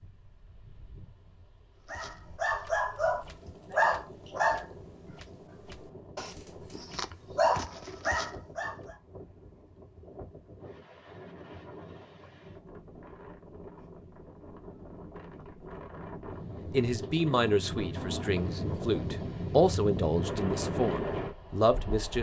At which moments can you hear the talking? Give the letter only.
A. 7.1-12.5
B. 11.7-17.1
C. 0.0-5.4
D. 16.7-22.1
D.